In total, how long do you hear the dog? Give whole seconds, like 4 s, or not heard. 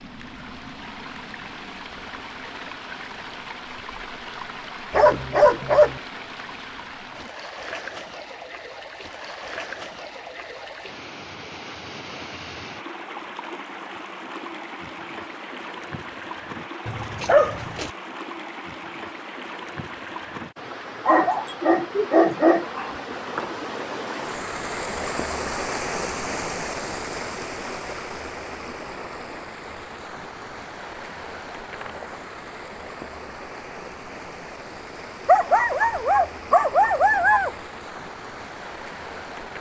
6 s.